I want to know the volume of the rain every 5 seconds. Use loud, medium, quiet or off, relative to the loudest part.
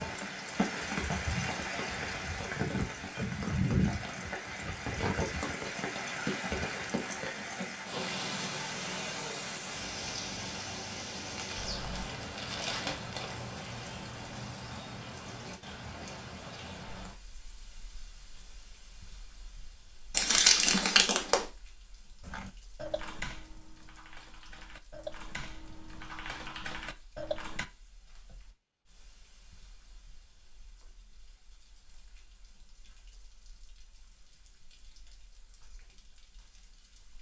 loud, loud, medium, quiet, quiet, quiet, quiet, quiet.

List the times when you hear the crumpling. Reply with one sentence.
You can hear the crumpling from 11.3 to 13.3 s and from 20.1 to 21.4 s.